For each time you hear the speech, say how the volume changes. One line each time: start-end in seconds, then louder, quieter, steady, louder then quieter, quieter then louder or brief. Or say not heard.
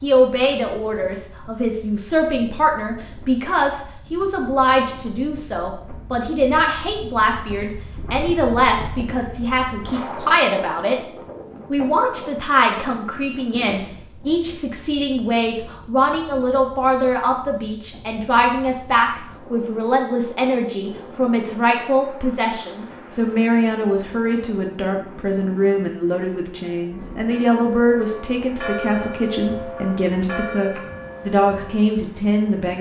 0.0-10.9 steady
11.7-32.7 steady.